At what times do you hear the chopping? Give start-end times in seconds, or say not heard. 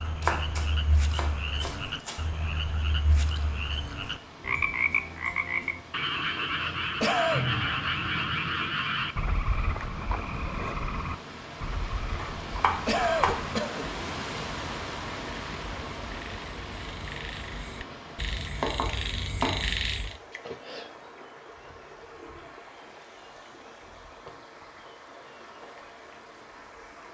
0.1-2.2, 12.2-13.4, 18.6-19.8.